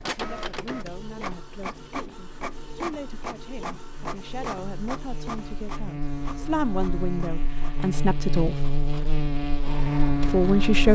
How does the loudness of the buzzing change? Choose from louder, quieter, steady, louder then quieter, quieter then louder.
louder.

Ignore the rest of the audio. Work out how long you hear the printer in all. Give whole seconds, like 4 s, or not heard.
11 s.